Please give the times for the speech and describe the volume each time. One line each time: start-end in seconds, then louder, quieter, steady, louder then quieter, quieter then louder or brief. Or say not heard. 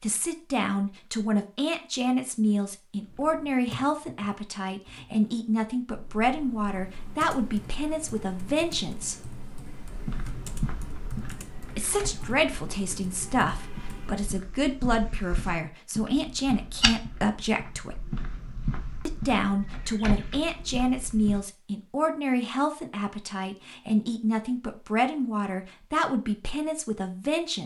0.0-9.2 steady
11.8-18.0 steady
19.1-27.6 steady.